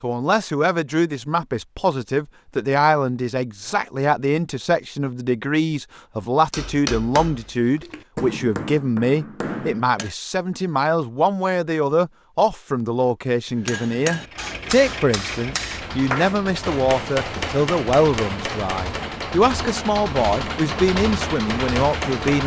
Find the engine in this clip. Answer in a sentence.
The engine can be heard from 14.2 to 22.4 s.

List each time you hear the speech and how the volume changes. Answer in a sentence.
You can hear the speech from 0.0 to 22.4 s, at a steady volume.